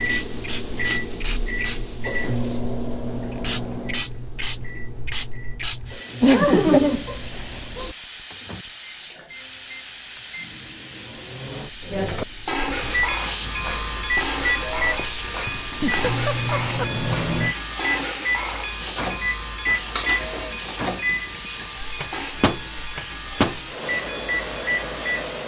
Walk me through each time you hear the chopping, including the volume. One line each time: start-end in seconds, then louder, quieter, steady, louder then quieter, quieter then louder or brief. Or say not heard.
not heard.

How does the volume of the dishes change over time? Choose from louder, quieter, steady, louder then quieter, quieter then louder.
quieter.